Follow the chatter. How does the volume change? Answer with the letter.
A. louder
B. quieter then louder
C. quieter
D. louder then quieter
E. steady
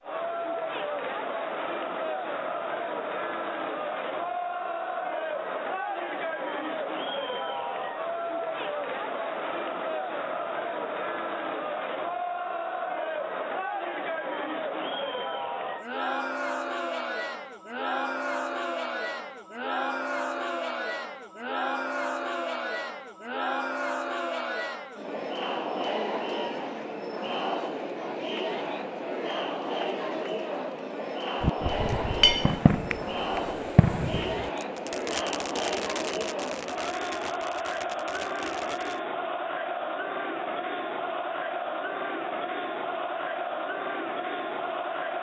E.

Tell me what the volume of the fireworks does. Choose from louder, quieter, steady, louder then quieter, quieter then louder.
quieter.